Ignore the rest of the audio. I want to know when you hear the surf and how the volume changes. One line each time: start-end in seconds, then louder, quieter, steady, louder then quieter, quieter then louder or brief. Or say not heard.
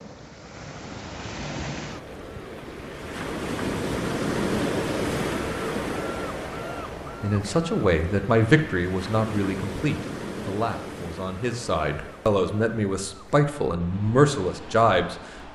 0.0-15.4 louder then quieter.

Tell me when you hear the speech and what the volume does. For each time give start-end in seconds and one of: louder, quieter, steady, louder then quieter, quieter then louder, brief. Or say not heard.
7.2-15.2 quieter then louder.